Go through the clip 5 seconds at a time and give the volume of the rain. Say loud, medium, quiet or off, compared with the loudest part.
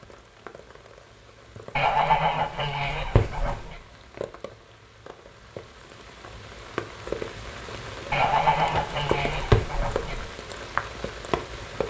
quiet, loud, loud.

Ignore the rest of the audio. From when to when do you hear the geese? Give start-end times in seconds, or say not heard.
1.8-3.8, 8.1-10.2.